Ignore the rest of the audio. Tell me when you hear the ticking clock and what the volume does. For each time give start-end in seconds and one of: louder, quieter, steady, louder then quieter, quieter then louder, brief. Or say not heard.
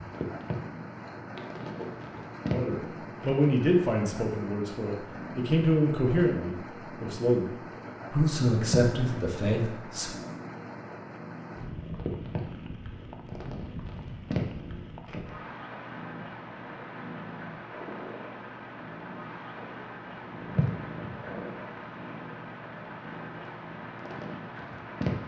not heard.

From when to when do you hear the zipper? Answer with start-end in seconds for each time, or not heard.
1.4-2.3.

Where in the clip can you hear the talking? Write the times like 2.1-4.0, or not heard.
2.5-7.5, 8.1-10.1.